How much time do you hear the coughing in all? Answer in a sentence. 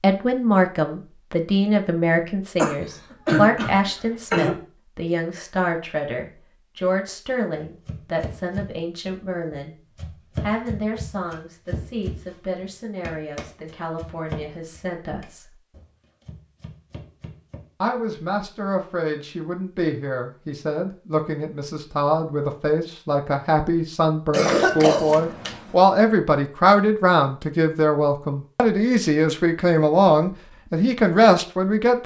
The coughing can be heard for 3 seconds in total.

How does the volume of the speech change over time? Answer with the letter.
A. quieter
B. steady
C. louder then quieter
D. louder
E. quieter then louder
E.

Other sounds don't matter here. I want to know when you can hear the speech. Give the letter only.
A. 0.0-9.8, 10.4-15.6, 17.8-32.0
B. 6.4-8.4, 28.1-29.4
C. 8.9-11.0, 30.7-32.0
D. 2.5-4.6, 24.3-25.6
A.